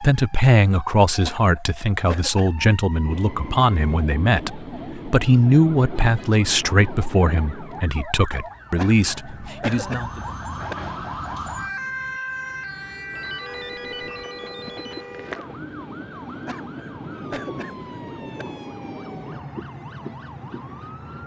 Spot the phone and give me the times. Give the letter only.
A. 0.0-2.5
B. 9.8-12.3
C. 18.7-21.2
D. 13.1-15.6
D.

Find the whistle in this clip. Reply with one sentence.
You can't hear the whistle here.